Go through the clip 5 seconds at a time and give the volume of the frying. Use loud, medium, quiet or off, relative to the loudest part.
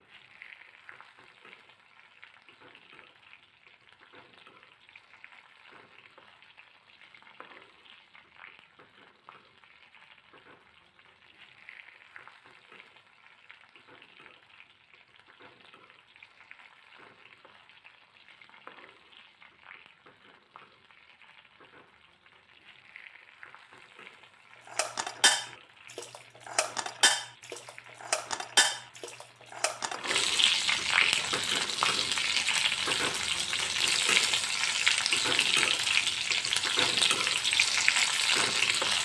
quiet, quiet, quiet, quiet, quiet, quiet, loud, loud.